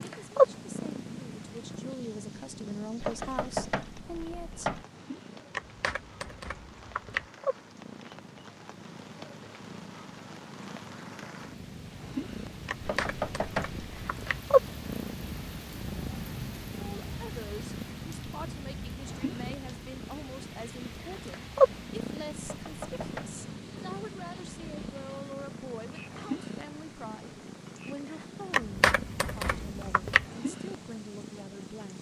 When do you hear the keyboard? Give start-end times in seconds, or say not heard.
5.5-7.2, 12.7-14.4, 28.5-30.2.